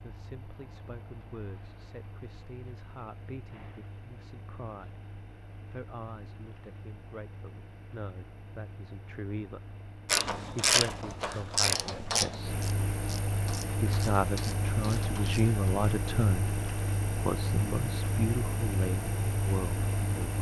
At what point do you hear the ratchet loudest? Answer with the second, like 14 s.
11 s.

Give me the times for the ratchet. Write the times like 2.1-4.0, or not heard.
10.1-15.5.